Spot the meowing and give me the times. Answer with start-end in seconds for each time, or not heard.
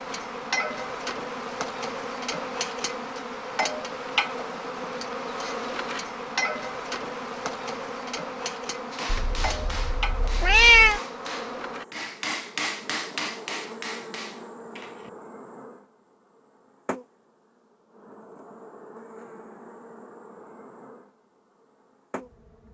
9.1-11.0.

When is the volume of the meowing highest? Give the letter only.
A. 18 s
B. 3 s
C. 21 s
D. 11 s
D.